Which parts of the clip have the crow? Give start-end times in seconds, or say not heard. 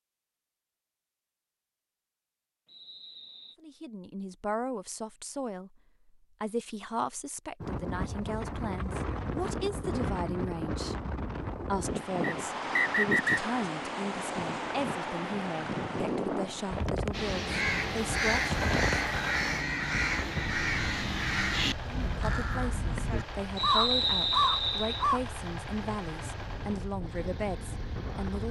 17.1-25.2.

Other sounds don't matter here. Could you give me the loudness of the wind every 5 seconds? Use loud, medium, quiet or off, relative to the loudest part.
off, loud, loud, loud, medium, medium.